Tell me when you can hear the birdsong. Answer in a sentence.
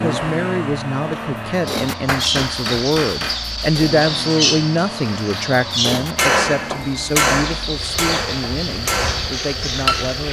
You can hear the birdsong from 1.6 to 10.2 s.